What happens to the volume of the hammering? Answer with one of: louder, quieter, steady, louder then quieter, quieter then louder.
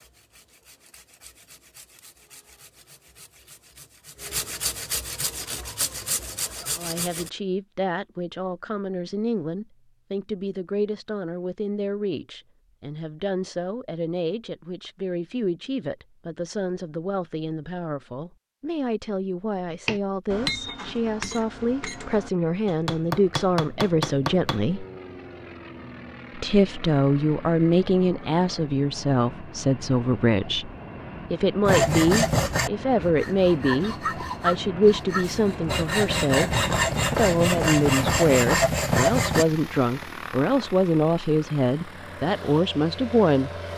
quieter then louder.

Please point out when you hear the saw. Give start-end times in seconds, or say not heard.
0.0-7.3, 31.6-39.5.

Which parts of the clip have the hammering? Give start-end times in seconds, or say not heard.
19.7-24.6.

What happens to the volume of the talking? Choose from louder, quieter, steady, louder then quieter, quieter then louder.
louder.